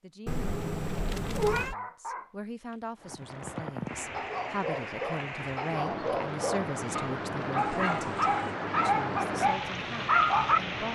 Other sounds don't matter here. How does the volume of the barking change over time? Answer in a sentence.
The volume of the barking goes up.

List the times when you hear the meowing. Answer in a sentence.
You can hear the meowing from 0.2 to 1.8 s and from 7.5 to 8.6 s.